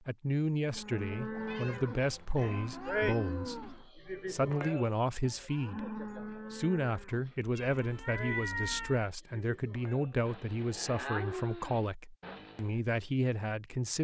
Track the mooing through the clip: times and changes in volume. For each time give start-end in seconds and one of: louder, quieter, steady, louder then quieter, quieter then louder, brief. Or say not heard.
0.7-12.8 quieter then louder.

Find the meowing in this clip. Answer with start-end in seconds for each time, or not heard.
1.3-3.9, 7.5-9.1.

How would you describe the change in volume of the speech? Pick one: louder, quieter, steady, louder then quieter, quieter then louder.
steady.